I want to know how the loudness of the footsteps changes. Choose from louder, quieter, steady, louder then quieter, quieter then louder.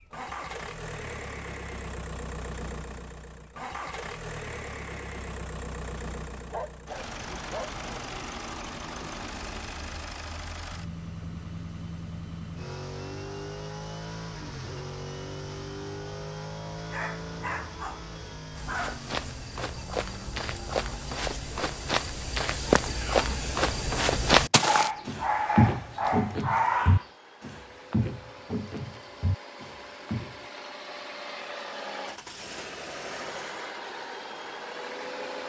louder then quieter.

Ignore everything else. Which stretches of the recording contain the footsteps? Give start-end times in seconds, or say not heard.
18.6-30.4.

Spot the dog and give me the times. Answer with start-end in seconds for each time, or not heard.
6.5-8.1, 16.9-19.1, 24.6-27.1.